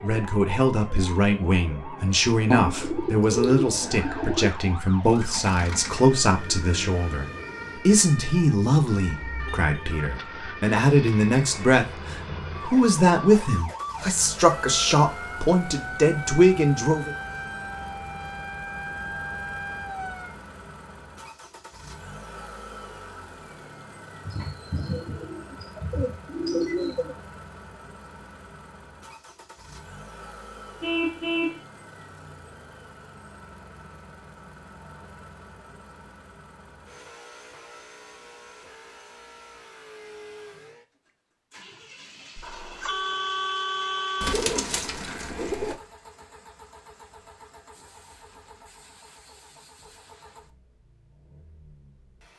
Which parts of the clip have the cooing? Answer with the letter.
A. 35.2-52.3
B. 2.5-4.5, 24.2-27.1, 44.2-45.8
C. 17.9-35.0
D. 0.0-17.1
B.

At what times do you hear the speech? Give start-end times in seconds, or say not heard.
0.0-17.1.